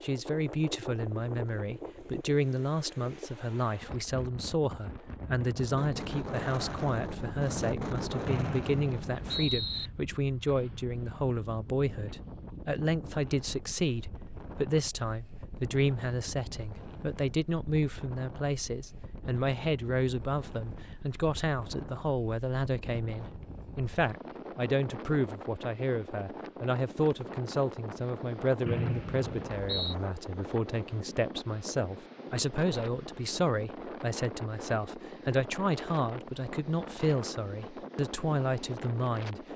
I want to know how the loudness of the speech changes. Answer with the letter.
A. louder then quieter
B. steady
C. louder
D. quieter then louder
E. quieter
B.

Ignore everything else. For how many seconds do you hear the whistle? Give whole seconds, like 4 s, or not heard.
3 s.